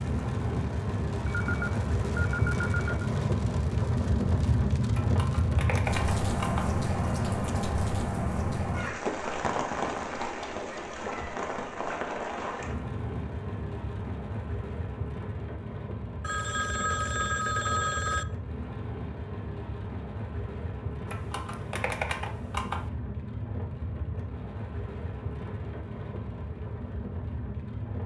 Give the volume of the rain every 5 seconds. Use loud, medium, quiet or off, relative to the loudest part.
loud, loud, medium, medium, medium, medium.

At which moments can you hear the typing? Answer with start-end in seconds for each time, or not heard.
5.0-6.8, 21.1-22.9.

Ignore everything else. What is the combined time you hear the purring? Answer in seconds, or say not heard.
not heard.